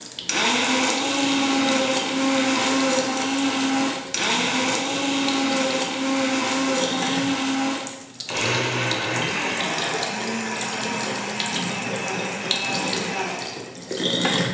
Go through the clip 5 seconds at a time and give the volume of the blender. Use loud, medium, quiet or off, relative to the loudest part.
loud, loud, medium.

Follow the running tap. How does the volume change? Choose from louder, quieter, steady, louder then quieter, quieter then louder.
louder.